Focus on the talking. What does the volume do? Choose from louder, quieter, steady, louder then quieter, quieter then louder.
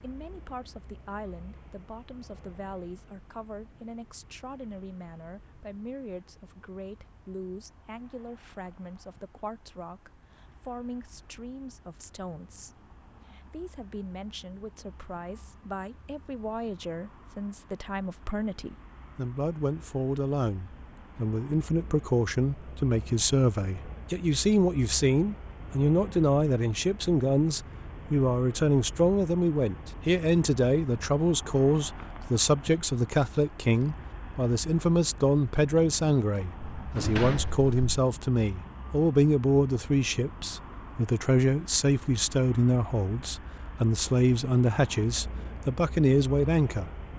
louder.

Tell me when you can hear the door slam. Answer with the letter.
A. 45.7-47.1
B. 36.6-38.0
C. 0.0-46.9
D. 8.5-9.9
B.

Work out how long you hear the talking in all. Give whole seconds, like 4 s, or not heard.
47 s.